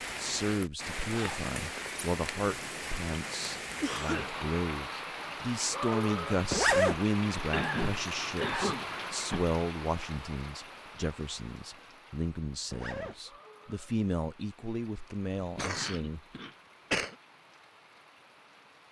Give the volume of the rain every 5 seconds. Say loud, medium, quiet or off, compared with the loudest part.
loud, loud, quiet, quiet.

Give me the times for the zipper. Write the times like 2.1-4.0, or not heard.
1.1-1.5, 6.5-7.0, 12.7-13.2.